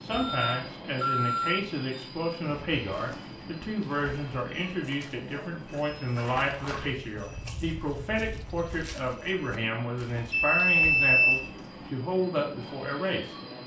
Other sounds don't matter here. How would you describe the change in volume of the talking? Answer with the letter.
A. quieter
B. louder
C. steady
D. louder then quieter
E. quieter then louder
C.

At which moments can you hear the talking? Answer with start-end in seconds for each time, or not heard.
0.0-13.3.